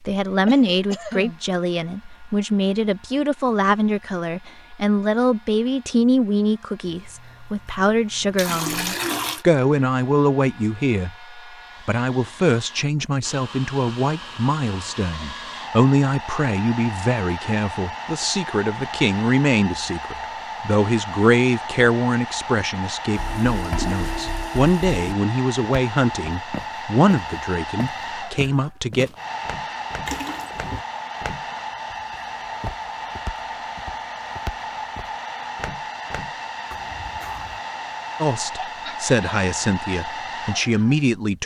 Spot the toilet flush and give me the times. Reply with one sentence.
The toilet flush can be heard from 6.8 to 9.4 s, from 23.1 to 25.1 s and from 30.1 to 30.9 s.